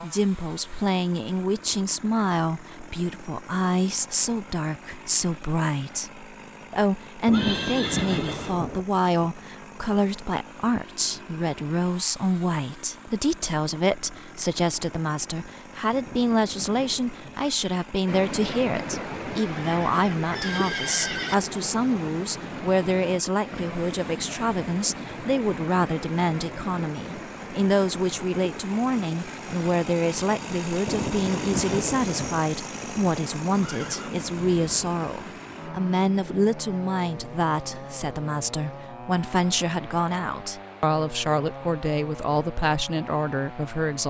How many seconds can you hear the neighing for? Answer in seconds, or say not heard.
5 s.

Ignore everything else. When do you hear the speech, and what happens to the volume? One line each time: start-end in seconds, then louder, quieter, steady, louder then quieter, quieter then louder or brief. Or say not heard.
0.0-44.0 steady.